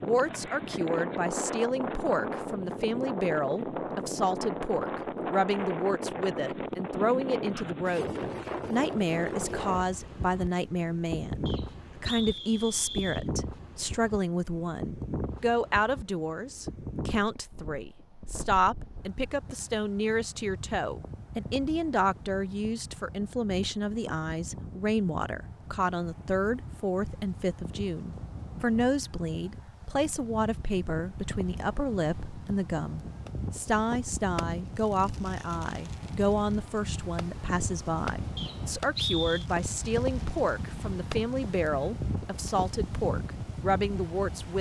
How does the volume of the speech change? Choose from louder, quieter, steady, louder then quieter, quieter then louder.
steady.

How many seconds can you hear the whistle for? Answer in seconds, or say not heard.
3 s.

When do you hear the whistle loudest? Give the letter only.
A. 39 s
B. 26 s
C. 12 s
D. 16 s
A.